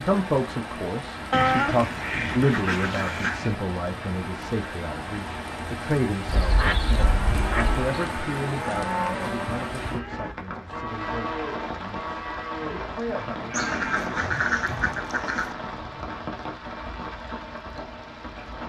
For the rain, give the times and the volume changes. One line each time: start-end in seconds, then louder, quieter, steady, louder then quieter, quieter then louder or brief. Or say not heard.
0.0-18.6 steady.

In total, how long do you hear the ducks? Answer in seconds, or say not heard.
6 s.